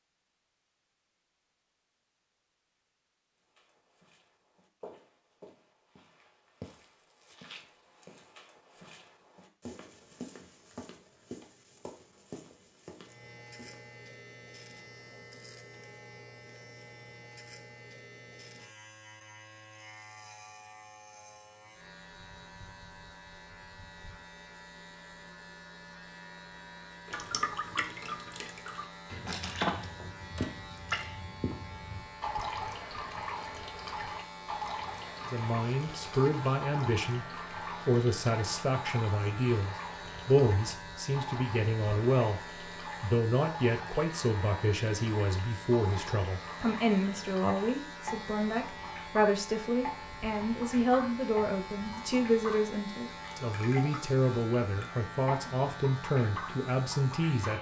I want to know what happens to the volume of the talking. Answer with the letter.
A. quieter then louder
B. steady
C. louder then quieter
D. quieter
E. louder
B.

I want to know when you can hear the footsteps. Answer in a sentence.
You can hear the footsteps from 3.5 to 13.9 s.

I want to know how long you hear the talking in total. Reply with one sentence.
You can hear the talking for 22 seconds altogether.